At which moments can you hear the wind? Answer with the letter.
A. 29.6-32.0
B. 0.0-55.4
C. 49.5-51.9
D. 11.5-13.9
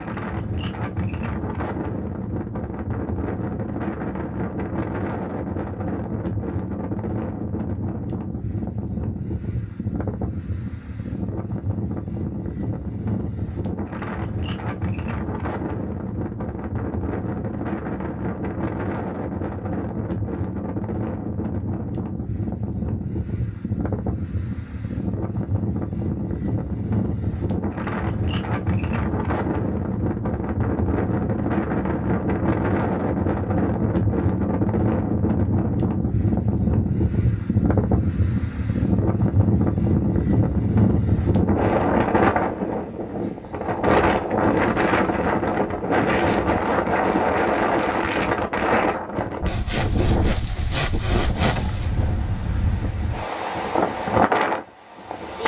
B.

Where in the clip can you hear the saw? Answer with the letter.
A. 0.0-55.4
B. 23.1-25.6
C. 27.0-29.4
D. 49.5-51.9
D.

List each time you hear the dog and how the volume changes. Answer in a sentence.
You can't hear the dog here.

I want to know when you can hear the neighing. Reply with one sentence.
You can't hear the neighing here.